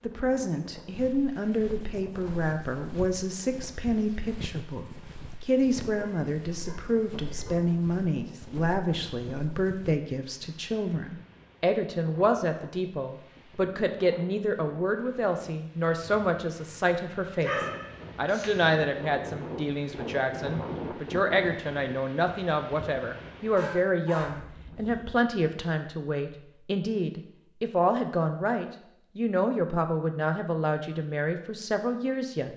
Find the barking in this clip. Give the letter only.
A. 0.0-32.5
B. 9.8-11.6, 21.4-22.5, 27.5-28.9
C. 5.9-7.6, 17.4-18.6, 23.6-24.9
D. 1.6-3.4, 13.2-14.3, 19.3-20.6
C.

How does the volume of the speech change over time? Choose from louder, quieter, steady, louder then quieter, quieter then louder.
steady.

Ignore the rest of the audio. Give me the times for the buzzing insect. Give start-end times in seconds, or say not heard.
not heard.